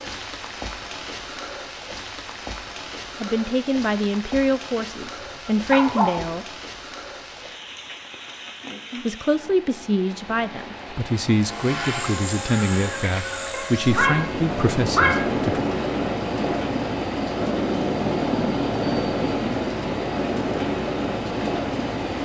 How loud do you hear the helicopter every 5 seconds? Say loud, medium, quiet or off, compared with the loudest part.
off, off, medium, loud, loud.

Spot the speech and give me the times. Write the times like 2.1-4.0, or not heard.
3.2-6.5, 9.1-15.7.